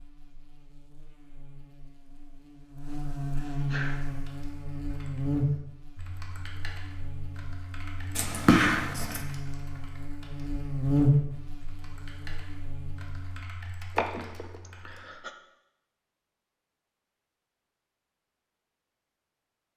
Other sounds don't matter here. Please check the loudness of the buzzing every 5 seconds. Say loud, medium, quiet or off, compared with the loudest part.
medium, medium, loud, off.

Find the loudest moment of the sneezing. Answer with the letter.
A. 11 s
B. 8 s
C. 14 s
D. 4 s
C.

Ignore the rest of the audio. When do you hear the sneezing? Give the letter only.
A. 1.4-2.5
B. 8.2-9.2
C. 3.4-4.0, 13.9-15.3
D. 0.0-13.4
C.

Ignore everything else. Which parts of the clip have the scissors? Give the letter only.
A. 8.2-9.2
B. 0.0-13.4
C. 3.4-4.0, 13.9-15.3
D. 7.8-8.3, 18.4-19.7
A.